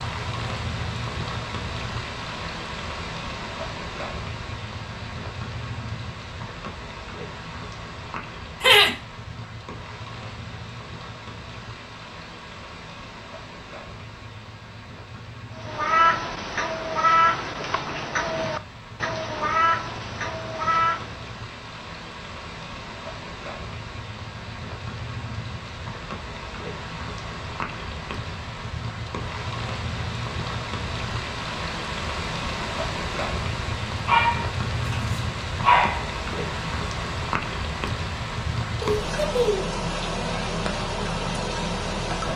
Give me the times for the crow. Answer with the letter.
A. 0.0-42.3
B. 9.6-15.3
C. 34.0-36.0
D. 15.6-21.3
D.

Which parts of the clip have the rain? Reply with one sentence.
The rain can be heard from 0.0 to 42.3 s.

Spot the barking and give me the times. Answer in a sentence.
You can hear the barking from 34.0 to 36.0 s.